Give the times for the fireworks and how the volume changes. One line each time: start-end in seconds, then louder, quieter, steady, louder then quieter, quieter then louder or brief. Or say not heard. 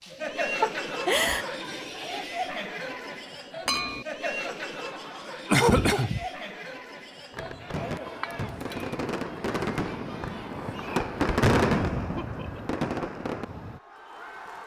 7.3-13.8 louder then quieter.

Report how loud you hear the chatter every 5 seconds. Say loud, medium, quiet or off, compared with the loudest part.
loud, medium, medium.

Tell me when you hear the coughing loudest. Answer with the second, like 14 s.
6 s.